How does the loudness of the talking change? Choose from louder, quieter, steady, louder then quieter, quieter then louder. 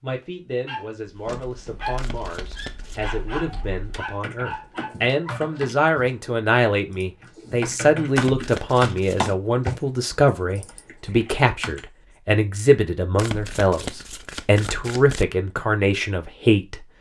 louder.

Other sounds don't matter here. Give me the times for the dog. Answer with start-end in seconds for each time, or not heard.
0.7-5.8.